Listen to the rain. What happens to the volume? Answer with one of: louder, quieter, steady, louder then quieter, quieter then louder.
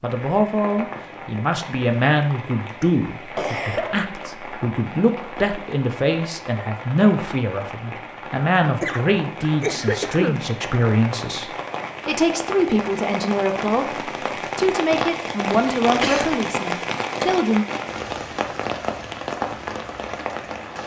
louder.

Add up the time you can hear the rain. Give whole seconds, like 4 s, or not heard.
21 s.